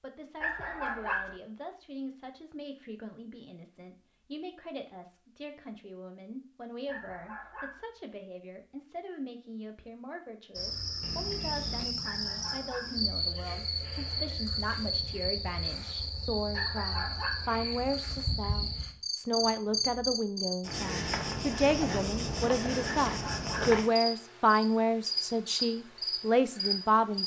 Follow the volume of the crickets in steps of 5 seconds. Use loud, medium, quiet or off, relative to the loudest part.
off, off, loud, loud, loud, loud.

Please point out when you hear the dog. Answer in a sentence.
The dog can be heard from 0.4 to 1.4 s, from 6.8 to 7.8 s, from 12.0 to 13.0 s, from 16.5 to 17.5 s and from 23.1 to 23.8 s.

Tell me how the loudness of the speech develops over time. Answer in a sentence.
The loudness of the speech goes up.